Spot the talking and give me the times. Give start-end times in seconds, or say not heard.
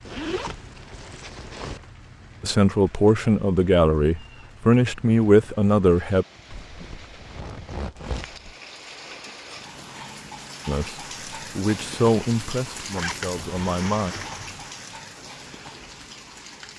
2.4-6.2, 10.7-14.2.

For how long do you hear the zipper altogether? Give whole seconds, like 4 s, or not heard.
6 s.